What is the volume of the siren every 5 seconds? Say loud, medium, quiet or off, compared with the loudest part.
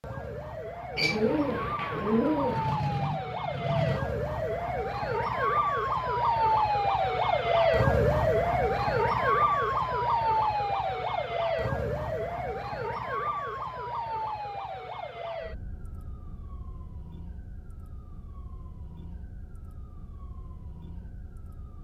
medium, loud, medium, quiet, quiet.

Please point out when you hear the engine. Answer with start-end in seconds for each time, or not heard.
2.5-4.0.